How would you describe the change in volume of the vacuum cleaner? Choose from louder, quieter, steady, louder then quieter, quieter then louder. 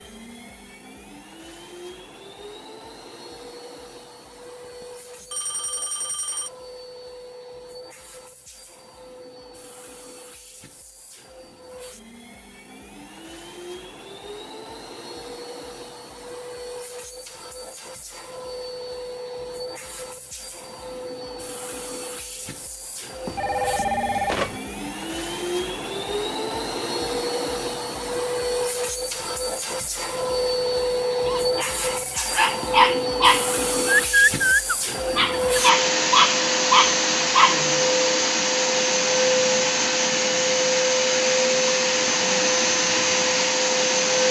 louder.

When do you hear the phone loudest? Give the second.
24 s.